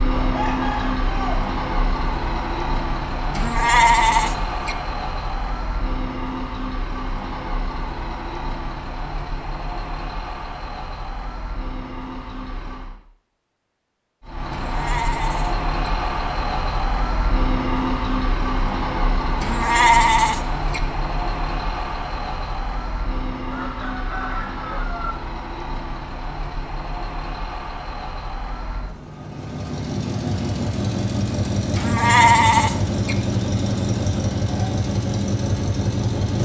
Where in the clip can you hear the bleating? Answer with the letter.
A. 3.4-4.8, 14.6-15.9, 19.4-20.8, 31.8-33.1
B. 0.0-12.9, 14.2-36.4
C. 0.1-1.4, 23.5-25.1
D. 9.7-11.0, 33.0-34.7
A.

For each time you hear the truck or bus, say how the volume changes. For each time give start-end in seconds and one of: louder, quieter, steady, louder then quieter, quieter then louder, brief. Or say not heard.
0.0-12.9 quieter
14.2-36.4 quieter then louder.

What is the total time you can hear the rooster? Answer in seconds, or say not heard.
3 s.